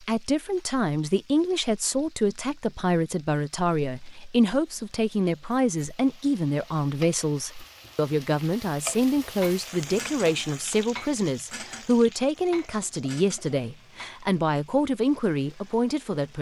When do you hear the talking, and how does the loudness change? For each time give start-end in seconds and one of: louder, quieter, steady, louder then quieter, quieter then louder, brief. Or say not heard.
0.0-16.3 steady.